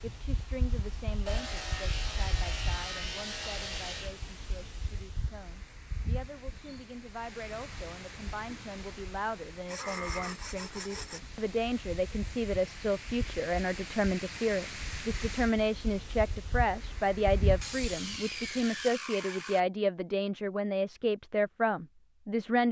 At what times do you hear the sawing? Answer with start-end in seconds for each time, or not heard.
1.2-4.2, 9.7-11.2, 17.6-19.6.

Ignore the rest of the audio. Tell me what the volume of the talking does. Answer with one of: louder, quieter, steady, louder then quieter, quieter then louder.
louder.